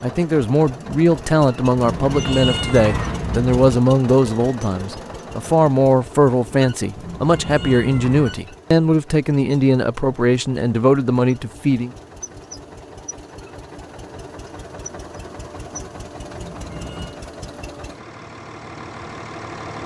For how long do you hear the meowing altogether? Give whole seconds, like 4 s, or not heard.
4 s.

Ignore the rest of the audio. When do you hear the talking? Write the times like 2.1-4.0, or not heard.
0.0-11.9.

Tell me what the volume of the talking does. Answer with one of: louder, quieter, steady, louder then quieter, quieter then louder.
steady.